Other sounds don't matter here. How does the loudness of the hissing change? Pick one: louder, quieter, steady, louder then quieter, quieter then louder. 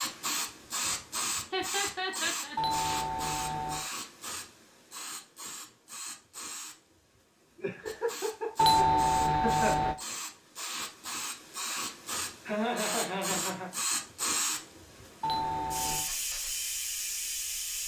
quieter then louder.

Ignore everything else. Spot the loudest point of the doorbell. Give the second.
9 s.